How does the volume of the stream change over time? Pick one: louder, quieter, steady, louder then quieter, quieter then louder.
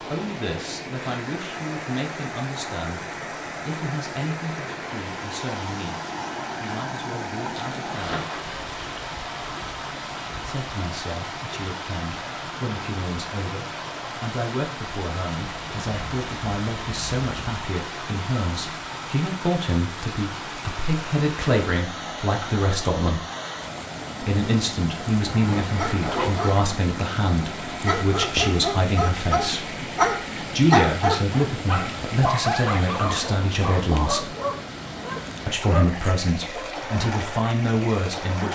steady.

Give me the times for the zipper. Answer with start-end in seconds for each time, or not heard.
7.5-8.4, 25.4-26.4.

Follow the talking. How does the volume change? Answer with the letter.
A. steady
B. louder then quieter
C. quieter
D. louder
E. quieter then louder
D.